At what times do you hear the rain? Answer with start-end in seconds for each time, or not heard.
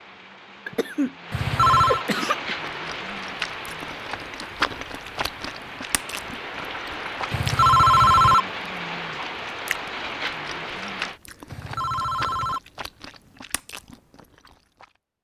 0.0-11.2.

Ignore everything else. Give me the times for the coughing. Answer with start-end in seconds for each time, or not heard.
0.7-2.5.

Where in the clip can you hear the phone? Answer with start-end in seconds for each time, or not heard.
1.3-2.0, 7.3-8.4, 11.5-12.6.